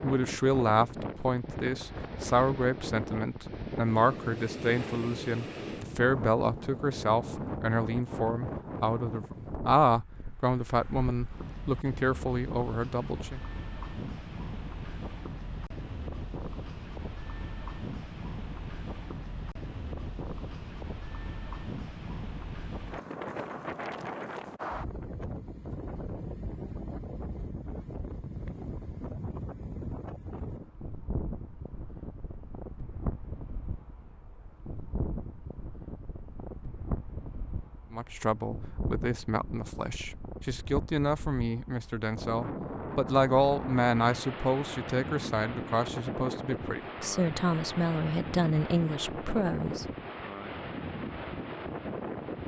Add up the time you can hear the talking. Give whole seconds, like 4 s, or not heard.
25 s.